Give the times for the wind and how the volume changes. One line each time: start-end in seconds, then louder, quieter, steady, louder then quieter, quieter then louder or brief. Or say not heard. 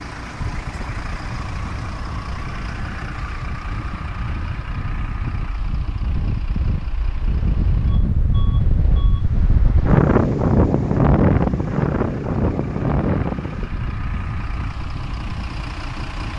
0.2-16.3 louder then quieter.